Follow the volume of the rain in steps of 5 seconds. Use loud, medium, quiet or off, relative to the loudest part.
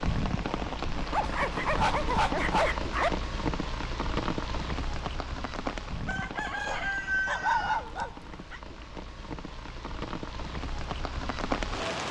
loud, medium, loud.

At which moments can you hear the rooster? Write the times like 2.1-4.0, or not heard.
6.0-7.8.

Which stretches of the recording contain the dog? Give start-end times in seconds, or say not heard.
1.1-3.1, 6.6-8.6.